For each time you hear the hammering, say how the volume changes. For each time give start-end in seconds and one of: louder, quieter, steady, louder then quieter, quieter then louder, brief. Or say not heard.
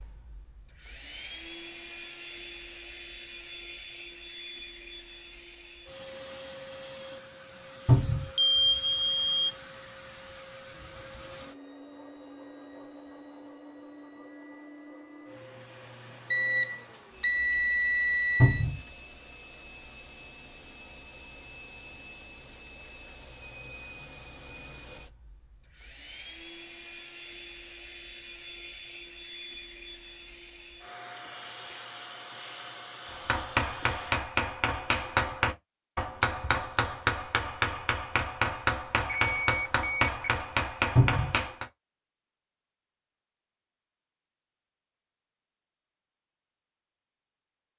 33.1-41.6 steady.